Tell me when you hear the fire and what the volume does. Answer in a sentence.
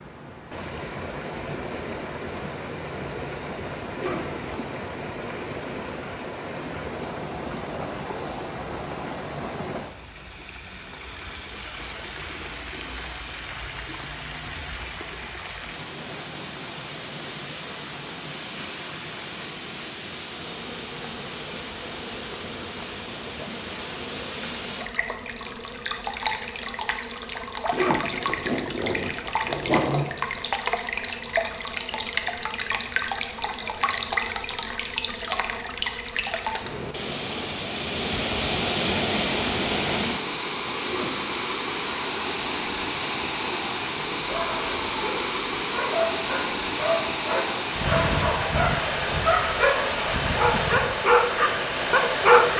You can't hear the fire here.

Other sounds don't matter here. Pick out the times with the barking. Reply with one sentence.
The barking can be heard from 44.1 to 52.5 s.